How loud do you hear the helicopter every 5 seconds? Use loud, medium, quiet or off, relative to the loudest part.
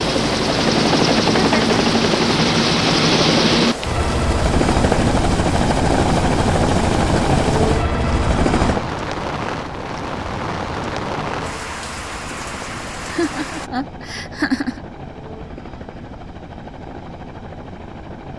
loud, loud, quiet, quiet.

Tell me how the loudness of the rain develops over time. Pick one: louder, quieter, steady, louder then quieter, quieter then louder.
steady.